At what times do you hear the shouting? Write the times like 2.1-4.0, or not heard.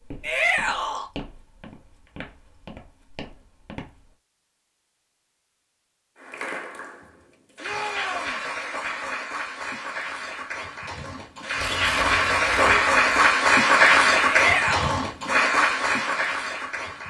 0.2-1.1, 7.6-8.4, 14.2-15.1.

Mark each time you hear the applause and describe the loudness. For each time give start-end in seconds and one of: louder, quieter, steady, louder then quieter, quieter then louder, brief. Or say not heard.
6.2-17.0 louder then quieter.